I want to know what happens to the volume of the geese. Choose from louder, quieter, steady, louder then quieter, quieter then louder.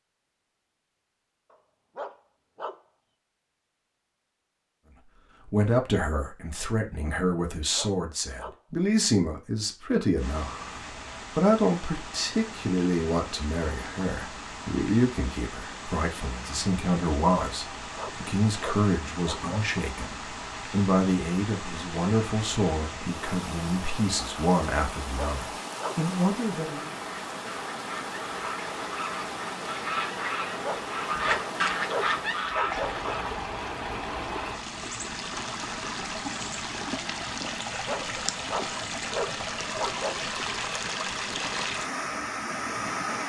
louder.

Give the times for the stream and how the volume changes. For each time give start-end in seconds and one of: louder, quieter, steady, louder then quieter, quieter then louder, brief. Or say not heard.
10.2-43.2 louder.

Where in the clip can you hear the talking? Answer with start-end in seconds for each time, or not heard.
5.5-10.7, 11.3-26.9.